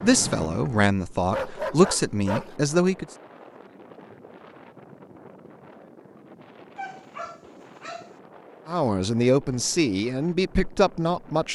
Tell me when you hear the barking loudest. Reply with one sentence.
The volume of the barking peaks at 2 seconds.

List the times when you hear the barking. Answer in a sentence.
You can hear the barking from 1.3 to 2.5 s and from 6.8 to 8.1 s.